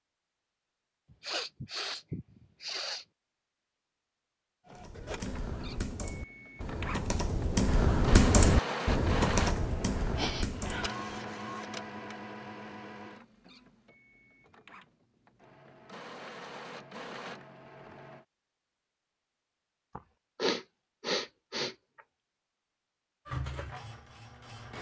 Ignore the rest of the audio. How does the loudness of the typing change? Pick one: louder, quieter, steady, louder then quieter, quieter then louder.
louder then quieter.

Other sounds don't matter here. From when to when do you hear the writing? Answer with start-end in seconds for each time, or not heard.
not heard.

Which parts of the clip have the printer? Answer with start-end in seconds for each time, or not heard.
4.7-18.2, 23.2-24.7.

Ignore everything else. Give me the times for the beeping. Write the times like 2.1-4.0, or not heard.
not heard.